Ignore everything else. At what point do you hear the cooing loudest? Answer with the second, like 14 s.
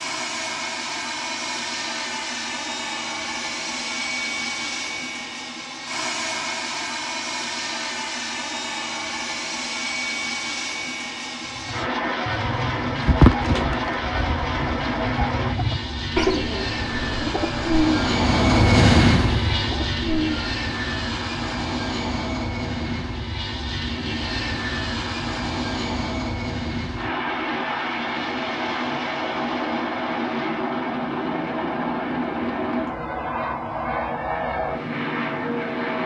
13 s.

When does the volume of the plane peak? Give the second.
19 s.